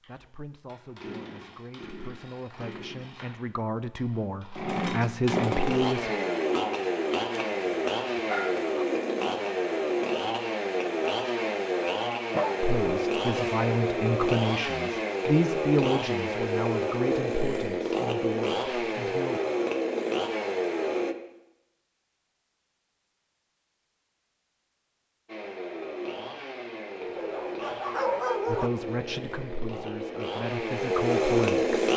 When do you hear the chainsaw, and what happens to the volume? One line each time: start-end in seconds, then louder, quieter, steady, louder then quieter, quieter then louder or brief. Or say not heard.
0.0-21.1 louder
25.2-31.9 louder.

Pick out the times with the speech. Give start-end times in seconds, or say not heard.
0.1-6.1, 12.6-19.4, 28.4-31.8.